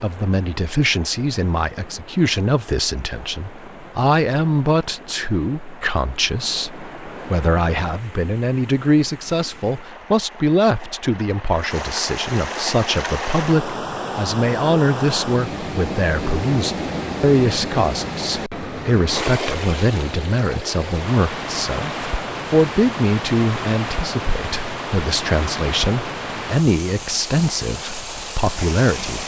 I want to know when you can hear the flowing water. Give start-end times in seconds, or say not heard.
0.0-29.2.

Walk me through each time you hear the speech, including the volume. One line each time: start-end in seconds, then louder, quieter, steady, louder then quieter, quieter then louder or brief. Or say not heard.
0.0-29.2 steady.